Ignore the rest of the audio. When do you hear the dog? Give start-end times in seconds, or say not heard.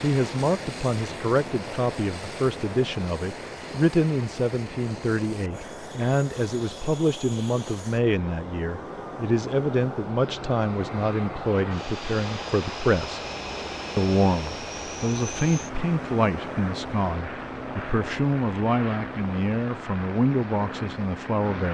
not heard.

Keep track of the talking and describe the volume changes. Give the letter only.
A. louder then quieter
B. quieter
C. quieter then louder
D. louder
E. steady
E.